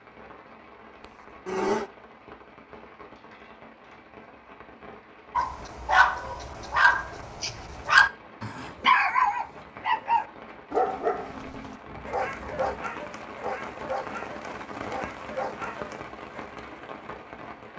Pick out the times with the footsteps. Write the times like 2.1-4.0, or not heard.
not heard.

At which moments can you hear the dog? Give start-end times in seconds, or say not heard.
5.3-16.4.